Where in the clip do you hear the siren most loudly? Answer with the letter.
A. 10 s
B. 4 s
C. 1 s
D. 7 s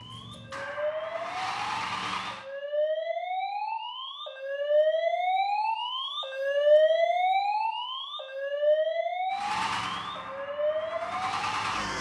D.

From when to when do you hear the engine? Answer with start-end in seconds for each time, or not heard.
0.0-2.5, 9.3-11.9.